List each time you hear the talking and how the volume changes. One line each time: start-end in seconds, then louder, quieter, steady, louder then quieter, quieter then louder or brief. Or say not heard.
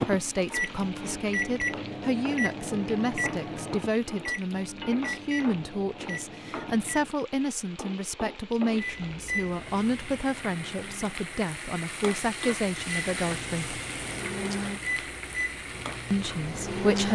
0.0-13.8 steady
16.1-17.1 brief.